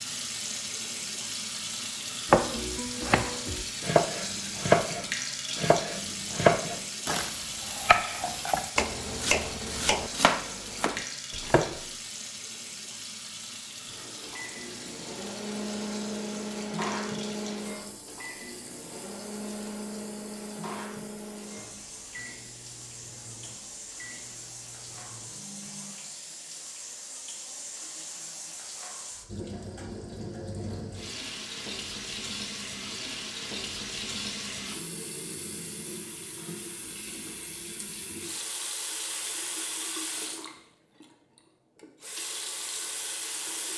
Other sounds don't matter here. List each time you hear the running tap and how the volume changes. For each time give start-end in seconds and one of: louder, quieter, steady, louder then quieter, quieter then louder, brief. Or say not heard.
0.0-43.7 quieter then louder.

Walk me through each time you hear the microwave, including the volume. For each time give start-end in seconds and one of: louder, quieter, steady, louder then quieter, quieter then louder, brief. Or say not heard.
13.8-25.9 quieter.